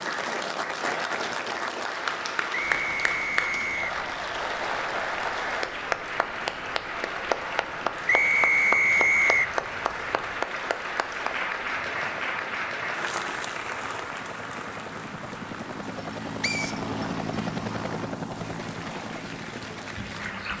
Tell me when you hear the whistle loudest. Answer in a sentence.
The volume of the whistle peaks at 9 seconds.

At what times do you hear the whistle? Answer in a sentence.
The whistle can be heard from 2.5 to 4.0 s, from 8.1 to 9.6 s and from 16.4 to 16.8 s.